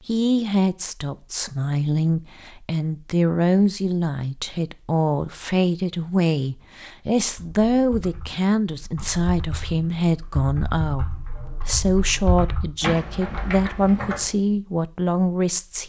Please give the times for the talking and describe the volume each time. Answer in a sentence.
The talking can be heard from 0.1 to 15.8 s, at a steady volume.